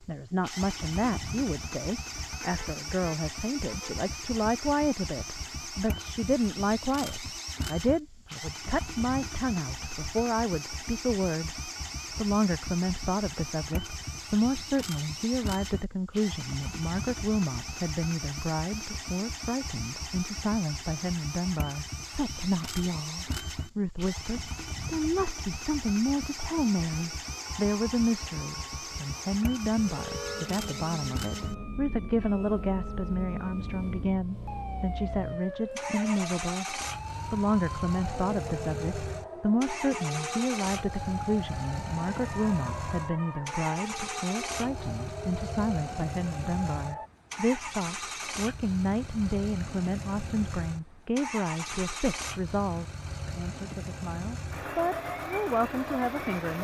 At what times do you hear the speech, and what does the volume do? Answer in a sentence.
The speech can be heard from 0.0 to 56.6 s, at a steady volume.